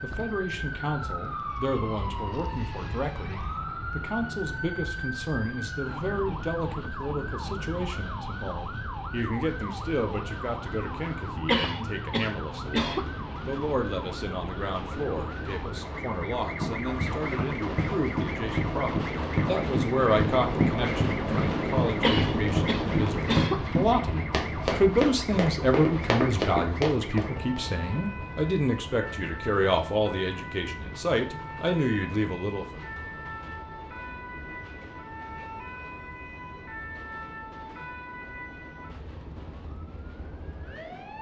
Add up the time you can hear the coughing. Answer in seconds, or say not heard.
3 s.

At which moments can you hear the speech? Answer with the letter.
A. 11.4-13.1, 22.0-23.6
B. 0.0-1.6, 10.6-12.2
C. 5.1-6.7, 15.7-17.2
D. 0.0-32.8
D.